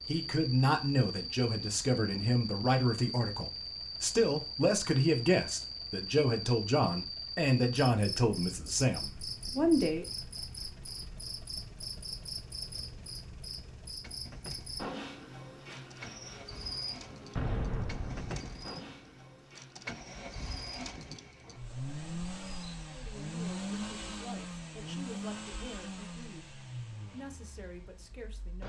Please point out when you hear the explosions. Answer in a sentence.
You can hear the explosions from 17.4 to 18.6 s.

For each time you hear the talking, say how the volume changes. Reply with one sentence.
You can hear the talking from 0.1 to 10.1 s, at a steady volume; and from 22.9 to 28.6 s, at a steady volume.